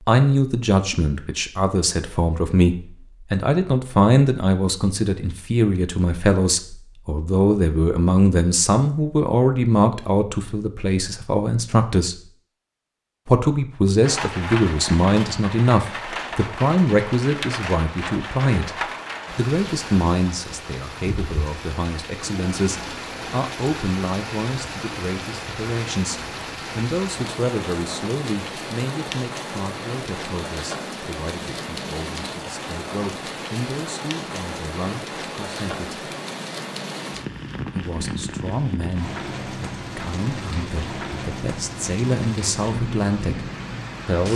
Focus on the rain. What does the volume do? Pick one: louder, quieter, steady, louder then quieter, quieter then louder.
steady.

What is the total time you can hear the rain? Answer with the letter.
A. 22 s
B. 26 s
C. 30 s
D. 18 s
C.